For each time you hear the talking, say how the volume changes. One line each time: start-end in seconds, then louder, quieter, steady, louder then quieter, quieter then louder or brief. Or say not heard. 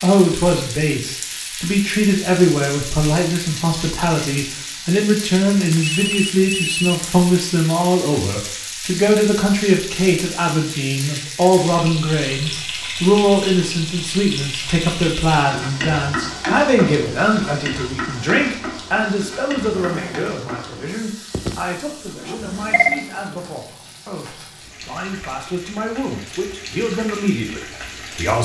0.0-28.4 quieter.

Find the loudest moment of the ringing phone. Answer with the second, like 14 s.
23 s.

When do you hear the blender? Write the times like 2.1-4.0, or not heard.
19.7-23.6.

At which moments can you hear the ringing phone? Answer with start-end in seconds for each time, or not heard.
5.5-7.0, 22.4-23.0.